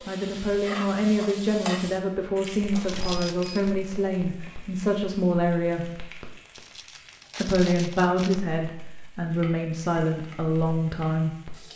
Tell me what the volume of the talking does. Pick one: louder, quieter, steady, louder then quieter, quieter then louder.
steady.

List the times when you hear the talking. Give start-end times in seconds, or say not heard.
0.1-6.0, 7.4-11.3.